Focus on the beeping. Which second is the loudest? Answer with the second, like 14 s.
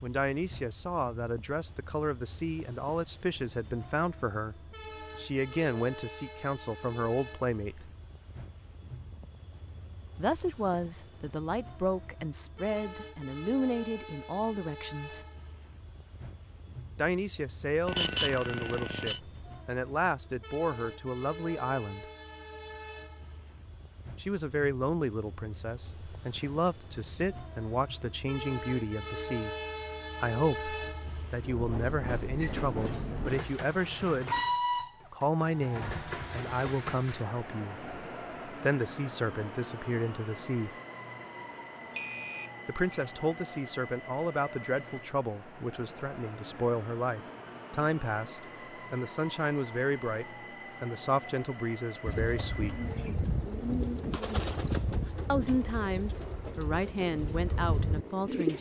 18 s.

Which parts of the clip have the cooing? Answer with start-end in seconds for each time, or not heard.
52.0-58.5.